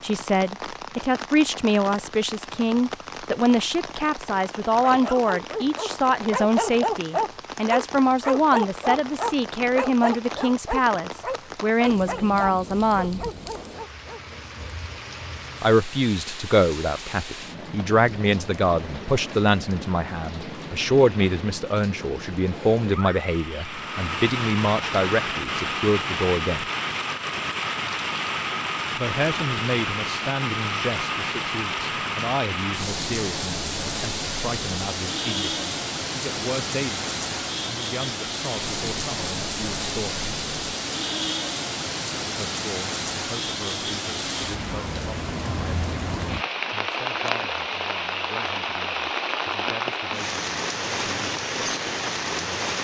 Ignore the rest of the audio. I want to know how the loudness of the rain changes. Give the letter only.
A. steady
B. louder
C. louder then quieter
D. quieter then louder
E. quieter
B.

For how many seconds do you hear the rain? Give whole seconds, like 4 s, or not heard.
53 s.